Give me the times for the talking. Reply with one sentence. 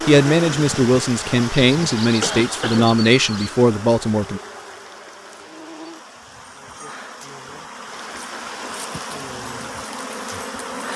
The talking can be heard from 0.1 to 4.4 s.